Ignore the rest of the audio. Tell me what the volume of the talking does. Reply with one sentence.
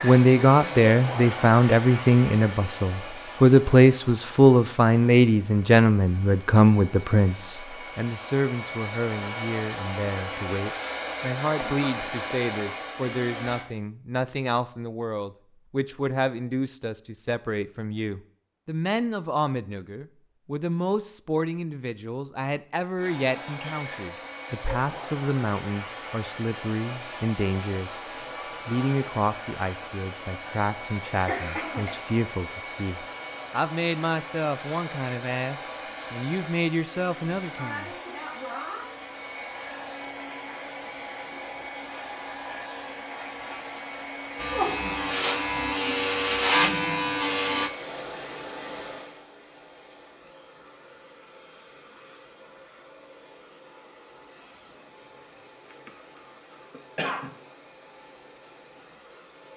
The loudness of the talking goes down.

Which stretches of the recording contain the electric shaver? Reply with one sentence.
The electric shaver can be heard from 44.4 to 47.7 s.